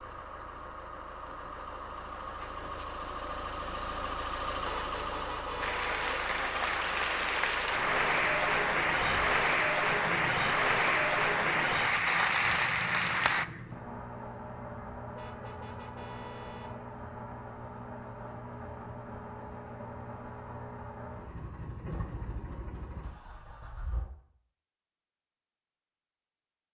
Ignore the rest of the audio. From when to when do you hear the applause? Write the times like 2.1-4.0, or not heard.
5.6-13.4.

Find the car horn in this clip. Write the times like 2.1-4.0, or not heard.
4.7-6.1, 15.2-16.8.